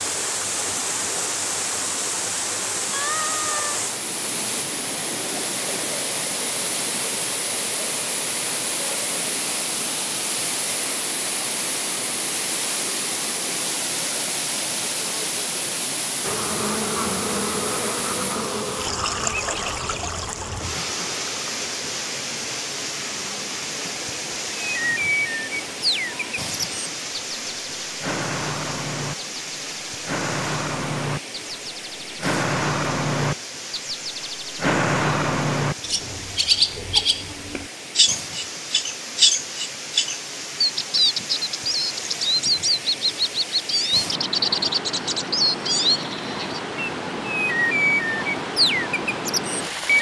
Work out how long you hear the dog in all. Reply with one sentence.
The dog can't be heard in this clip.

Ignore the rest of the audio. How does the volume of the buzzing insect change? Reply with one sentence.
The loudness of the buzzing insect goes down.